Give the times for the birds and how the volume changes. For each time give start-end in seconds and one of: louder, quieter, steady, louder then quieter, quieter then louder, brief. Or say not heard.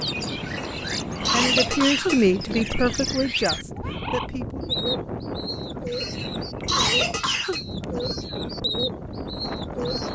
0.0-10.0 steady.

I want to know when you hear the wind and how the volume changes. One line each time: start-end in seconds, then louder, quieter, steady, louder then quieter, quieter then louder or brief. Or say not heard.
0.0-10.0 steady.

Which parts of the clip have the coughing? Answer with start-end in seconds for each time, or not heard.
0.4-2.3, 5.8-7.6.